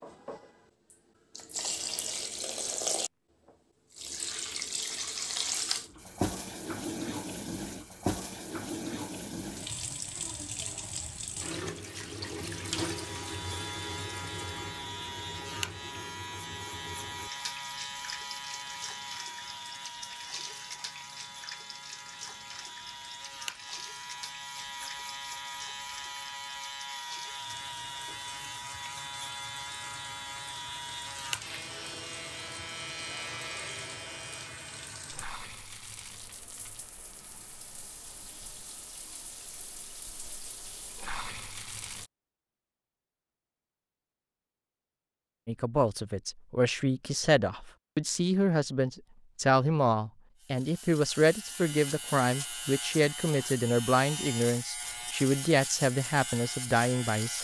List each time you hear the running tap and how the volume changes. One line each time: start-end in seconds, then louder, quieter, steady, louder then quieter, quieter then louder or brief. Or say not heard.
0.0-42.1 quieter.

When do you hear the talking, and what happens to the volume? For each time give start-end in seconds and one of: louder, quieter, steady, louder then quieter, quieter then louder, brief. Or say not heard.
45.5-57.3 steady.